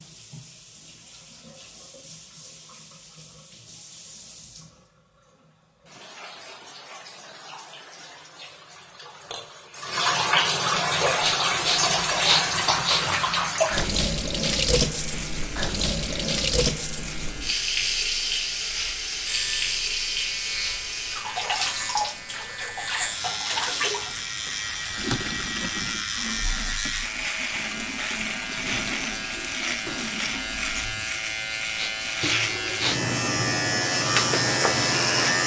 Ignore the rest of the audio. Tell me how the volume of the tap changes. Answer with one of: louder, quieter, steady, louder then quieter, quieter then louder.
louder then quieter.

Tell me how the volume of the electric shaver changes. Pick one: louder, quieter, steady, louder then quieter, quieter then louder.
louder.